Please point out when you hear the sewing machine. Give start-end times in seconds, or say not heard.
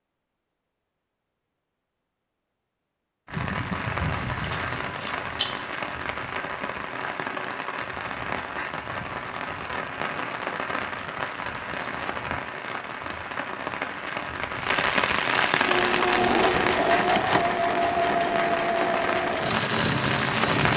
15.6-20.7.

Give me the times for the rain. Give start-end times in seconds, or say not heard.
3.2-20.7.